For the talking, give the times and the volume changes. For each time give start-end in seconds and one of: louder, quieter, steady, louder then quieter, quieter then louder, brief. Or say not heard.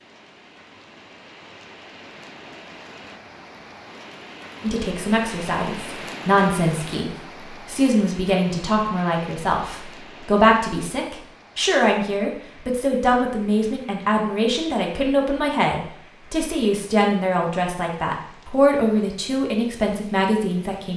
4.6-20.9 steady.